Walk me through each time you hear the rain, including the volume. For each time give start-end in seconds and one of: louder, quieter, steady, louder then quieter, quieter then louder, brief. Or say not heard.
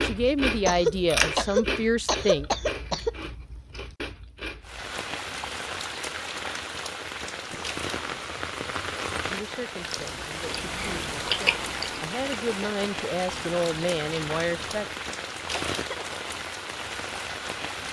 4.6-17.8 steady.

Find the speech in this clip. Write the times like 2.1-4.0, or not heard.
0.0-2.5, 9.2-15.0.